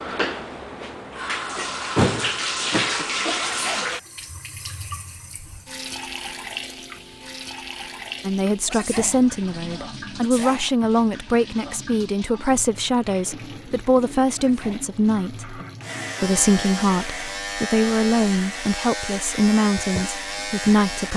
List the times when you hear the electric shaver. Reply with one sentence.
The electric shaver can be heard from 15.8 to 21.1 s.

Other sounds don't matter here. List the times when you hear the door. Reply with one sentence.
The door can be heard from 1.9 to 3.0 s.